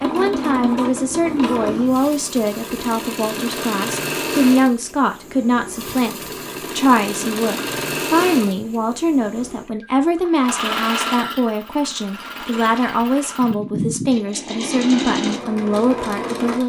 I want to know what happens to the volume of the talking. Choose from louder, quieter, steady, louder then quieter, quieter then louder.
steady.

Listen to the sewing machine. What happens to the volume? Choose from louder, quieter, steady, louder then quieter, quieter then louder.
steady.